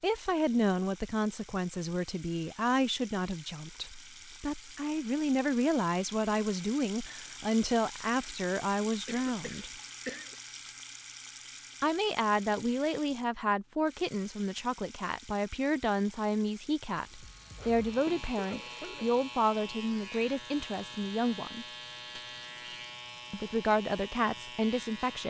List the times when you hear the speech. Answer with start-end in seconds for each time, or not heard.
0.0-9.7, 11.8-21.6, 23.3-25.2.